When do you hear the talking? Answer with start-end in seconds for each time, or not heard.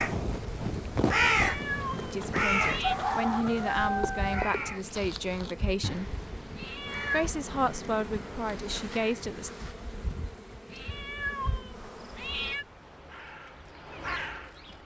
2.0-6.2, 7.1-9.5.